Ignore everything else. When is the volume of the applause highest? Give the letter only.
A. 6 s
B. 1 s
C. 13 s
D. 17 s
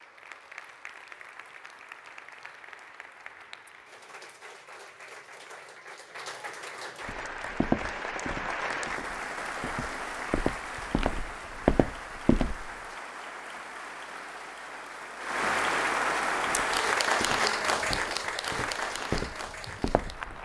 D.